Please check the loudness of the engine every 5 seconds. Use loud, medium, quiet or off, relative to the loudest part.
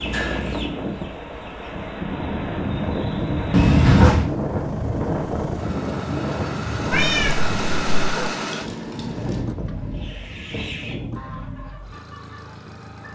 medium, loud, medium.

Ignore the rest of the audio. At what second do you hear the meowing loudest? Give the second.
4 s.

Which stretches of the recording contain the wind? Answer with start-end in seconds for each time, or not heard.
0.0-10.8.